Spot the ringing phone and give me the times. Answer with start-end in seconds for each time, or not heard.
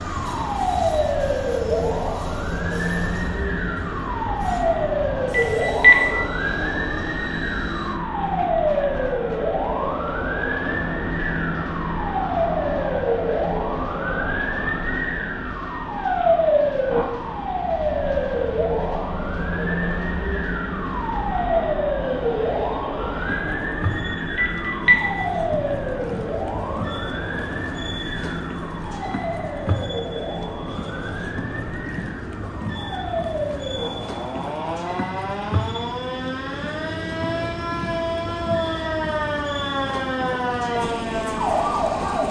5.3-6.0, 24.4-25.0.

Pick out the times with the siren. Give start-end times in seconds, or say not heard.
0.0-42.2.